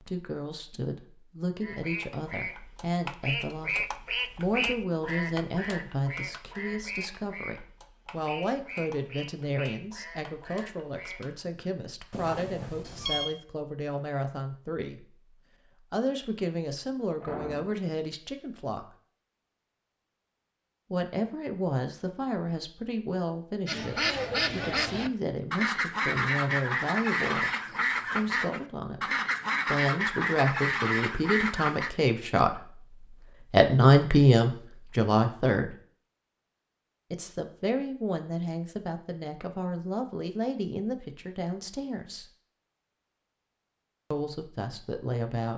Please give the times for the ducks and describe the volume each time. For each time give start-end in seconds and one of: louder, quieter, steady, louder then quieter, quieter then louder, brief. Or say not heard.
1.6-11.4 quieter
23.6-31.9 steady.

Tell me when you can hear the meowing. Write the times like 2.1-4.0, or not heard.
12.1-13.3.